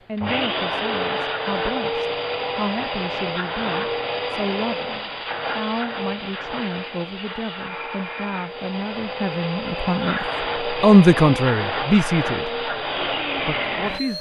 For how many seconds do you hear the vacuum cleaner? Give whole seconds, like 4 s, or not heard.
14 s.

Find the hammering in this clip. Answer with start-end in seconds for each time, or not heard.
not heard.